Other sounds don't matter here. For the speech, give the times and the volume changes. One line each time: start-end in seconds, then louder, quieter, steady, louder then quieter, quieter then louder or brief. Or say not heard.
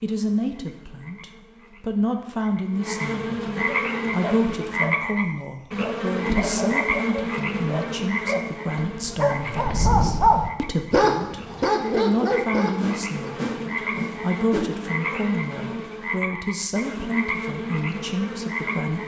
0.0-19.0 steady.